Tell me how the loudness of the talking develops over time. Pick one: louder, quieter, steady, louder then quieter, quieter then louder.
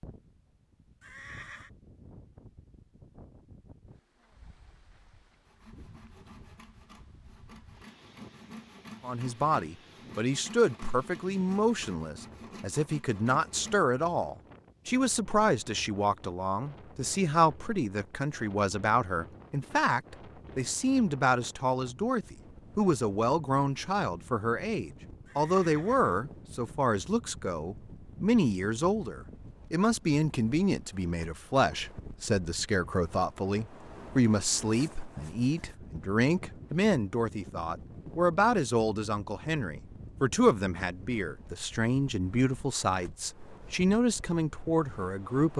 steady.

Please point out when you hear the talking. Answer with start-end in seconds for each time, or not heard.
9.0-45.5.